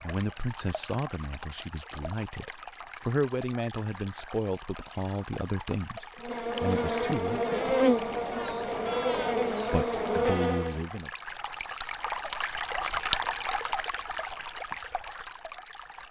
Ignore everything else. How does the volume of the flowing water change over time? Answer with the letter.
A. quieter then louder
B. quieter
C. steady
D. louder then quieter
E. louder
E.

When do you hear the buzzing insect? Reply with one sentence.
The buzzing insect can be heard from 6.2 to 10.8 s.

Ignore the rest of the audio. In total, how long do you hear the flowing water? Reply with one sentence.
You can hear the flowing water for 16 seconds altogether.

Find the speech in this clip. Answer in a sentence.
You can hear the speech from 0.0 to 7.4 s and from 9.7 to 11.1 s.